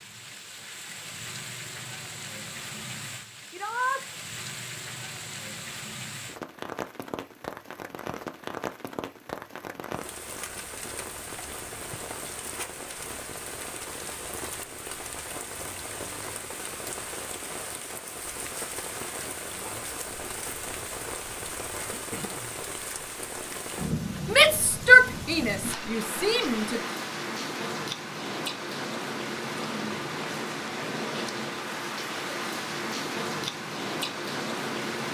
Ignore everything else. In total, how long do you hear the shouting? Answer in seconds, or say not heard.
3 s.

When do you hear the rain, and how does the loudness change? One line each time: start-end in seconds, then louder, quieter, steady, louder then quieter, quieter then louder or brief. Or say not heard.
0.0-35.0 louder.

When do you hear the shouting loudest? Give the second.
25 s.